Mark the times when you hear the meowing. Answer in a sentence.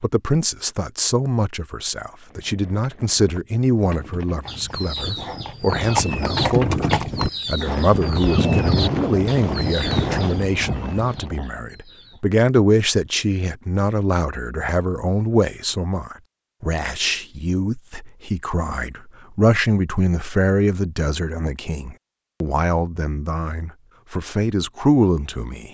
The meowing can't be heard in this clip.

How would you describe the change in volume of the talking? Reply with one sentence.
The volume of the talking stays about the same.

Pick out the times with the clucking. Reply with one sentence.
You can hear the clucking from 4.5 to 12.2 s.